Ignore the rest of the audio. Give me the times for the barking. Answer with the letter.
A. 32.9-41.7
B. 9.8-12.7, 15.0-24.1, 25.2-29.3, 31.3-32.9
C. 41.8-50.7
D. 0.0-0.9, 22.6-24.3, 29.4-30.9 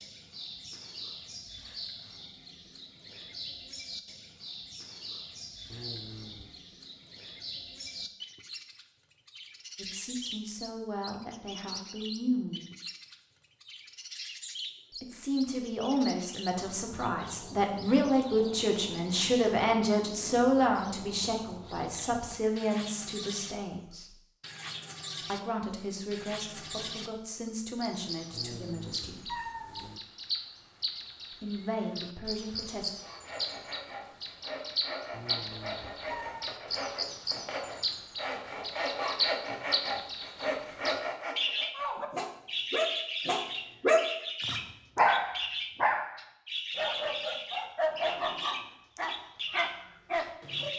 C.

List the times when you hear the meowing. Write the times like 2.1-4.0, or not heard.
5.7-6.6, 28.3-30.0, 35.1-36.5.